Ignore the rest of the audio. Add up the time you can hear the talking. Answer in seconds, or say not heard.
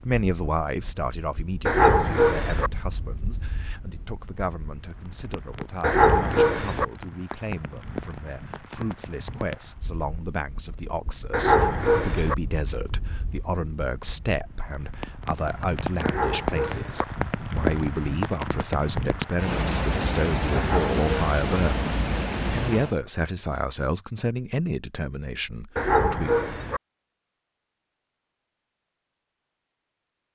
26 s.